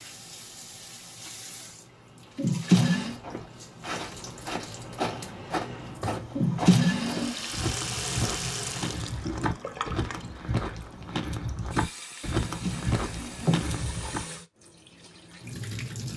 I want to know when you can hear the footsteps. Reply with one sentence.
You can hear the footsteps from 3.0 to 14.2 s.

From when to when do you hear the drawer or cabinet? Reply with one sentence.
The drawer or cabinet can be heard from 2.4 to 3.2 s, from 6.3 to 7.3 s and from 12.3 to 13.7 s.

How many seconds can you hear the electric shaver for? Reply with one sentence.
You can't hear the electric shaver here.